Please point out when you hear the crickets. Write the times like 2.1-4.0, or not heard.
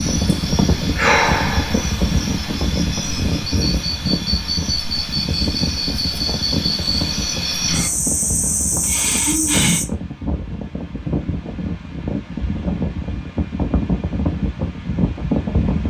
0.0-9.8.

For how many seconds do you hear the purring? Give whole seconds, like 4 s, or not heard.
not heard.